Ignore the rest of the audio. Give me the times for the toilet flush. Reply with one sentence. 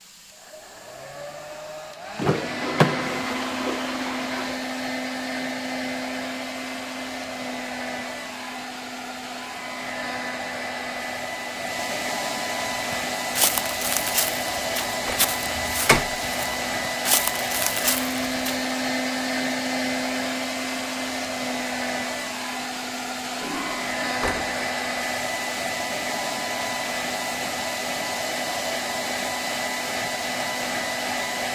The toilet flush can be heard from 2.2 to 4.6 s and from 23.4 to 23.9 s.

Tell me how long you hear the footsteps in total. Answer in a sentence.
You can hear the footsteps for 6 seconds altogether.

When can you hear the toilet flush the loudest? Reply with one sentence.
The volume of the toilet flush peaks at 3 seconds.